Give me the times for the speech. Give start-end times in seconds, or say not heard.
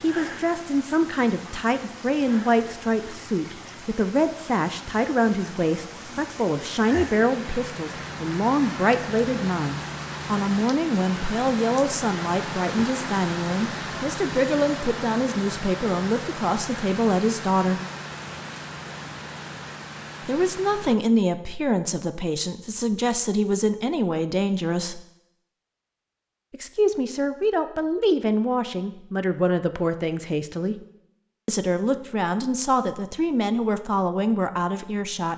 0.0-17.8, 20.2-25.0, 26.5-30.8, 31.4-35.3.